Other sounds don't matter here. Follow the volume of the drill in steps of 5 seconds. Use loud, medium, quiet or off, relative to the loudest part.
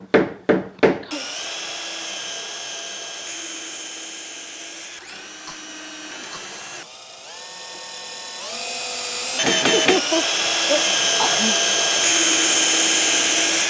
medium, medium, loud.